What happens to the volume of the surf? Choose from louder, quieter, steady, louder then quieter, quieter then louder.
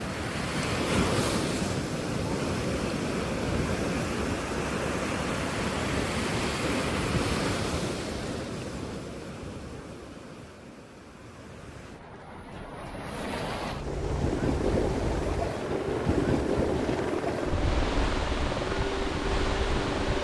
quieter then louder.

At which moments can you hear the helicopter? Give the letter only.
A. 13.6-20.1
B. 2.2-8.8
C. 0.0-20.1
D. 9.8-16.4
A.